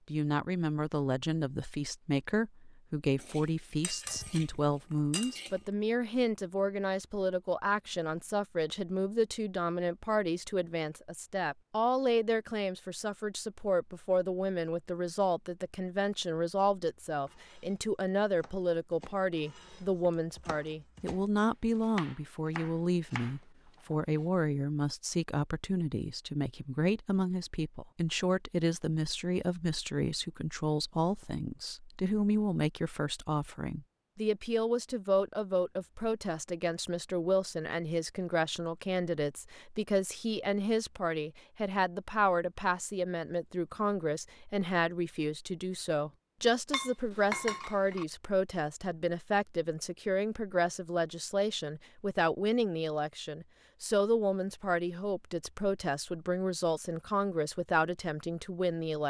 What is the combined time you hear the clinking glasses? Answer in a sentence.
The clinking glasses can be heard for 4 seconds in total.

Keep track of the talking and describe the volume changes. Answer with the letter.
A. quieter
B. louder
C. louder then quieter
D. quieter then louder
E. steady
E.